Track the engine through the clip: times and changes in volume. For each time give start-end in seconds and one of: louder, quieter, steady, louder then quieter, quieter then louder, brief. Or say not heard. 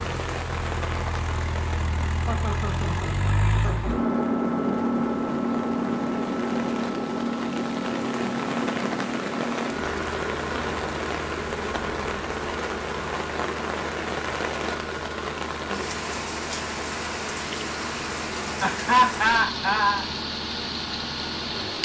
0.0-21.7 quieter.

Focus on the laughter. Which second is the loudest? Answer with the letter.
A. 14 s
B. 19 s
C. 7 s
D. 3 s
B.